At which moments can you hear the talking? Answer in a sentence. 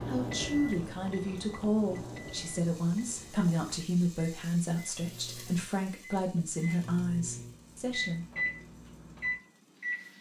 The talking can be heard from 0.1 to 8.2 s.